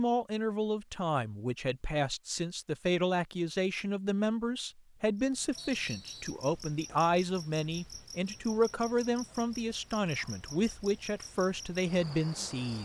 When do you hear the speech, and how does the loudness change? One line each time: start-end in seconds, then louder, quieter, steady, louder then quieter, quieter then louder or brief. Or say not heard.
0.0-12.8 steady.